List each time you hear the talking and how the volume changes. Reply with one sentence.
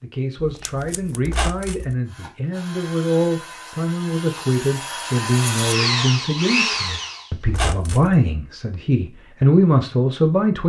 You can hear the talking from 0.0 to 10.6 s, getting louder.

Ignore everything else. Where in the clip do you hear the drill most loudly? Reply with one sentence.
The volume of the drill peaks at 6 seconds.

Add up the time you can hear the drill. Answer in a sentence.
You can hear the drill for 5 seconds altogether.